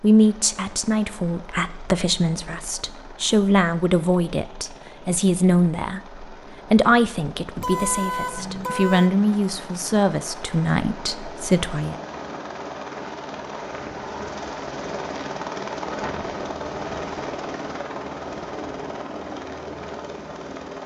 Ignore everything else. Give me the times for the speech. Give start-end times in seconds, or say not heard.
0.0-11.9.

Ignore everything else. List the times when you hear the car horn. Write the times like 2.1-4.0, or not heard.
7.5-9.1.